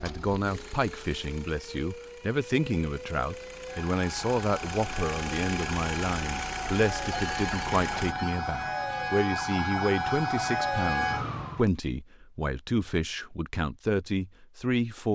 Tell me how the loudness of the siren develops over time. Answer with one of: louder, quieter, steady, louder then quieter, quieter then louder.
louder.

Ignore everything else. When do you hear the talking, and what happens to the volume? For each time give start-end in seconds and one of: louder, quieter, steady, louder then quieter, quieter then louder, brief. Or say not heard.
0.0-15.1 steady.